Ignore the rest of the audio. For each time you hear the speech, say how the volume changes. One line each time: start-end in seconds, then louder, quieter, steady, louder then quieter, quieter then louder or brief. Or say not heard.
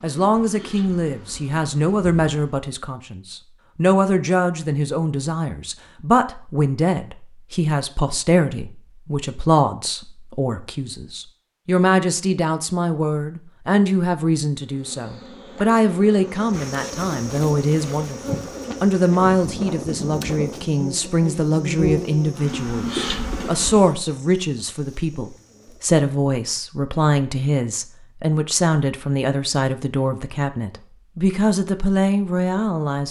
0.0-33.0 steady.